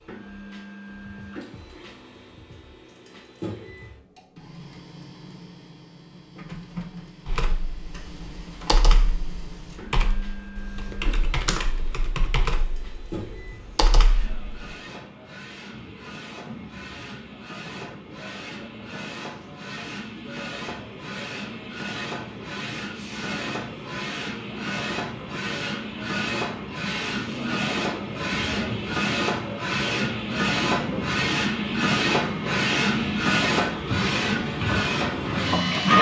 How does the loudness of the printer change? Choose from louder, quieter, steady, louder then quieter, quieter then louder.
louder.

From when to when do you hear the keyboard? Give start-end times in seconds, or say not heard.
7.2-14.7.